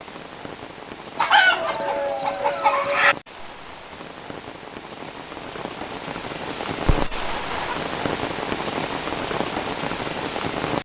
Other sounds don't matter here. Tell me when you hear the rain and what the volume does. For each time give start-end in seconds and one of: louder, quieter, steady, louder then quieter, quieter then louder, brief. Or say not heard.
0.0-10.7 louder.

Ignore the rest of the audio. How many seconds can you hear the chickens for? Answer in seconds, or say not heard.
3 s.